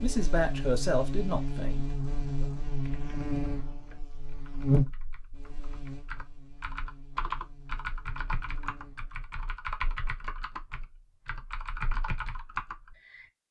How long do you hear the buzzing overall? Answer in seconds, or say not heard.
9 s.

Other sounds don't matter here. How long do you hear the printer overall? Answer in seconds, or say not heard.
not heard.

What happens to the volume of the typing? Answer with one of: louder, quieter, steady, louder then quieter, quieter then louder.
louder.